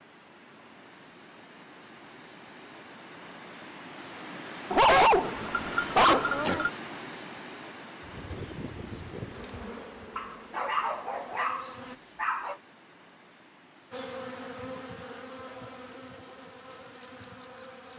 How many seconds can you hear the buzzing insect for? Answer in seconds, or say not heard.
8 s.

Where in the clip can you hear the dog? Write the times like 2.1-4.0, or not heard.
4.7-6.7, 10.2-12.6.